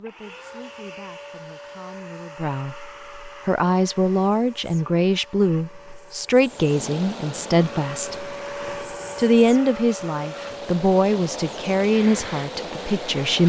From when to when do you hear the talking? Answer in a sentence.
The talking can be heard from 0.0 to 8.2 s and from 9.2 to 13.4 s.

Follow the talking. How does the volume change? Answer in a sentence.
The loudness of the talking goes up.